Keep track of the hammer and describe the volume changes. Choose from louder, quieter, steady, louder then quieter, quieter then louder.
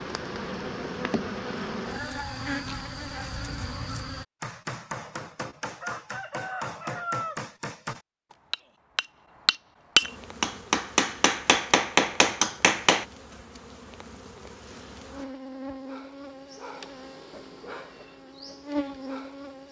louder.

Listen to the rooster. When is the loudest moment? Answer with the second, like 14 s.
7 s.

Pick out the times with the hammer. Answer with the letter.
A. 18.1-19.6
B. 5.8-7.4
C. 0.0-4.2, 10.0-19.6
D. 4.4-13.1
D.